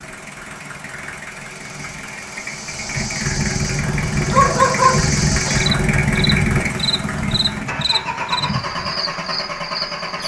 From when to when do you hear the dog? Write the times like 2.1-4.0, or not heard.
4.2-5.9.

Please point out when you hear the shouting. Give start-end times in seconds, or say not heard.
not heard.